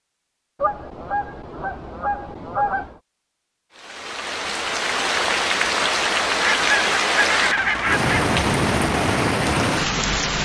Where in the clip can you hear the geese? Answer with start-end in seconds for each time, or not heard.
0.6-3.0, 6.3-8.4.